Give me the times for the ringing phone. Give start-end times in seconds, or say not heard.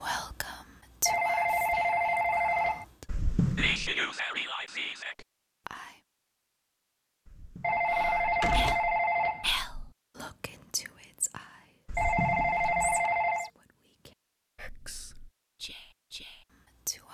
1.1-2.9, 7.6-9.4, 11.9-13.5.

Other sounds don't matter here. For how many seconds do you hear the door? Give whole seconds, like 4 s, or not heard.
4 s.